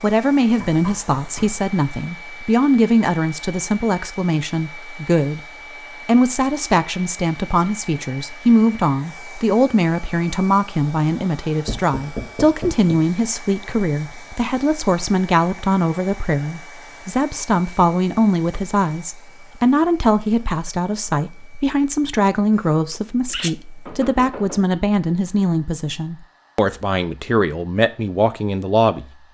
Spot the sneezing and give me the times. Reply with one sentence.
You can hear the sneezing from 22.6 to 23.6 s.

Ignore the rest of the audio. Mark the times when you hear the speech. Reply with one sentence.
The speech can be heard from 0.0 to 5.4 s and from 6.0 to 29.1 s.